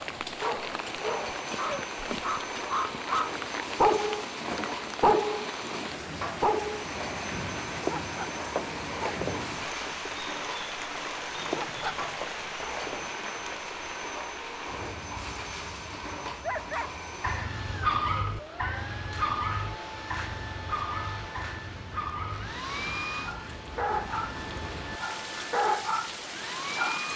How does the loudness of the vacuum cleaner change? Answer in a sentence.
The loudness of the vacuum cleaner stays about the same.